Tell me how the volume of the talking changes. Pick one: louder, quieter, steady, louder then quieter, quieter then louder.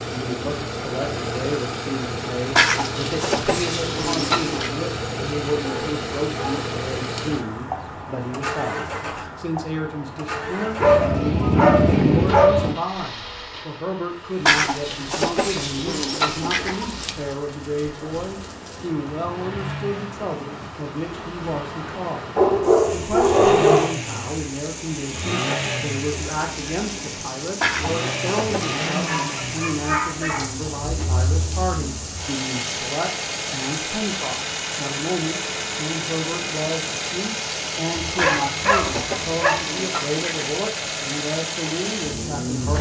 steady.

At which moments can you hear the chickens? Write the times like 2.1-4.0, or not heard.
2.5-4.7, 14.4-17.1, 27.6-29.4, 38.1-40.6.